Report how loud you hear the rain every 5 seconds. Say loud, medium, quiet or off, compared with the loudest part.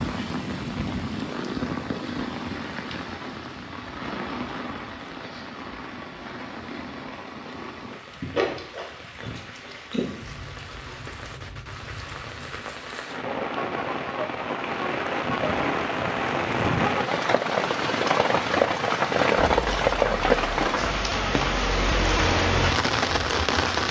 medium, quiet, medium, loud, loud.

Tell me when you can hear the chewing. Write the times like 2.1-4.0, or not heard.
7.5-12.8.